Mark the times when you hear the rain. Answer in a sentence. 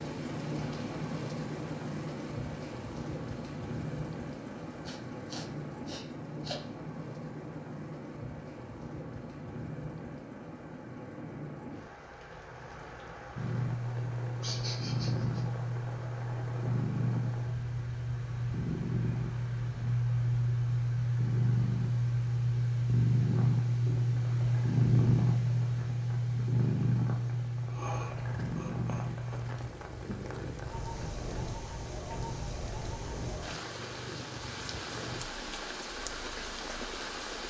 You can hear the rain from 0.0 to 37.4 s.